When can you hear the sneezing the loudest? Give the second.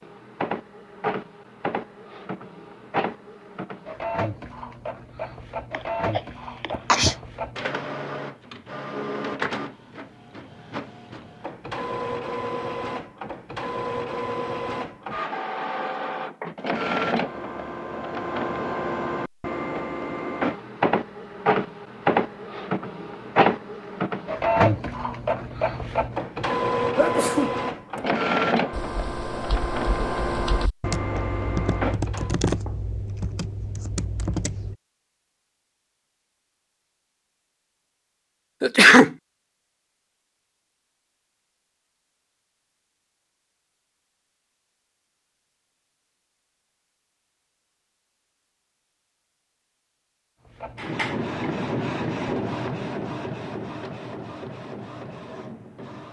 39 s.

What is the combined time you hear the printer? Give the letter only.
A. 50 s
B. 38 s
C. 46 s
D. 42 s
B.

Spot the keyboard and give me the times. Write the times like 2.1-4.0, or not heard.
28.7-34.8.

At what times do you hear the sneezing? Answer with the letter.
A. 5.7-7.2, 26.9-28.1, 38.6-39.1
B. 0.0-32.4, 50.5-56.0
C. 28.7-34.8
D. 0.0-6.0
A.